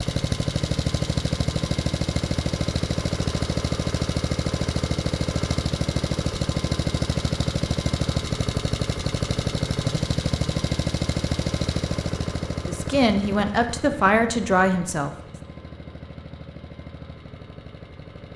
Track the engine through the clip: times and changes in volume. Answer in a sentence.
The engine can be heard from 0.0 to 18.3 s, getting quieter.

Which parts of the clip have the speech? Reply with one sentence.
The speech can be heard from 12.7 to 15.2 s.